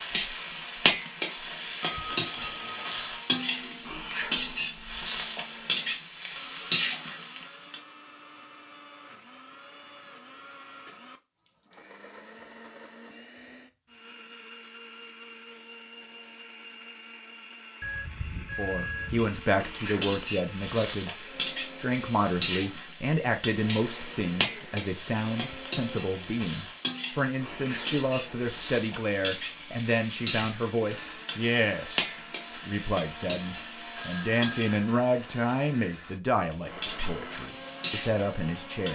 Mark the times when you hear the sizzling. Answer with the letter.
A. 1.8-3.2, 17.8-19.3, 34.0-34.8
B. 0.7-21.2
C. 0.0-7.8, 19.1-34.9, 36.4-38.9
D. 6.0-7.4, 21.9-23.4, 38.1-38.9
C.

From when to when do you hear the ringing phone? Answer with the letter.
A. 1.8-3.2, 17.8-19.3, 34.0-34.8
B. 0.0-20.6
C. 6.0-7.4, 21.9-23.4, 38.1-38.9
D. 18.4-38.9
A.